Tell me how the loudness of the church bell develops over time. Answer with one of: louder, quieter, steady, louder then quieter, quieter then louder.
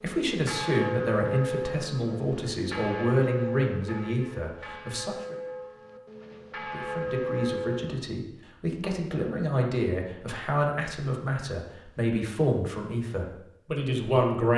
quieter then louder.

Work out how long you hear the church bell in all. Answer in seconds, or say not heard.
8 s.